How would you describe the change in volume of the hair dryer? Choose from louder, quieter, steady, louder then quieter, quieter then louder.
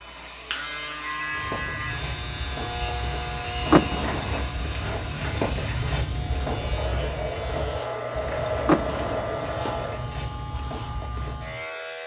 louder.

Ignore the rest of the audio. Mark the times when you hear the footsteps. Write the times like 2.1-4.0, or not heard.
1.2-11.7.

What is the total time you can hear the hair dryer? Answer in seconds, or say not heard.
10 s.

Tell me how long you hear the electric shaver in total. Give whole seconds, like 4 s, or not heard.
12 s.